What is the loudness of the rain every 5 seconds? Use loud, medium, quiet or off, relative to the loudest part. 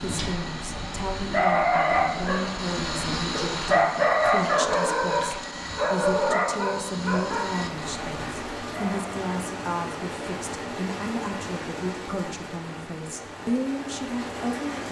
off, loud, loud.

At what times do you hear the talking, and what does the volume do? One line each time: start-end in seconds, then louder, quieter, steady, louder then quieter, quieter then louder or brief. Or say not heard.
0.0-14.8 steady.